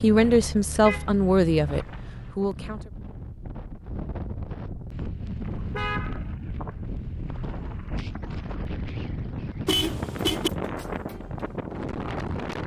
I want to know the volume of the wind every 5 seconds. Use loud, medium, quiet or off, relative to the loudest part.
medium, loud, loud.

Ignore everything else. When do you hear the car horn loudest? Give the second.
10 s.